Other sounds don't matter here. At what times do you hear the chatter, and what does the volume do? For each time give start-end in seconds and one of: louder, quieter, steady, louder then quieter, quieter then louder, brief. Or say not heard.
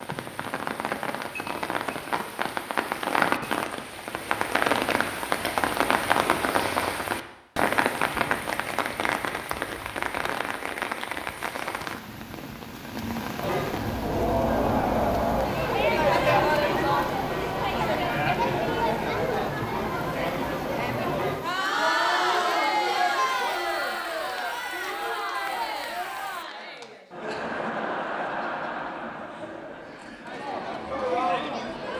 13.4-31.9 quieter.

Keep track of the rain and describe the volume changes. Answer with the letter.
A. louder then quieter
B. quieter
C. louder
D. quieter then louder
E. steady
B.